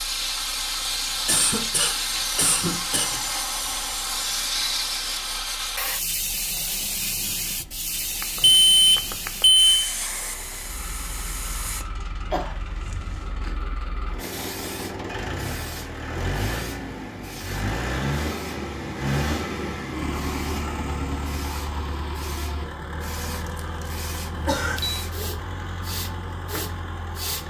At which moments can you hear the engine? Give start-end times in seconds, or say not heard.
0.0-27.4.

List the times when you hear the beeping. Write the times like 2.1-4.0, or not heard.
8.2-9.8, 24.3-25.0.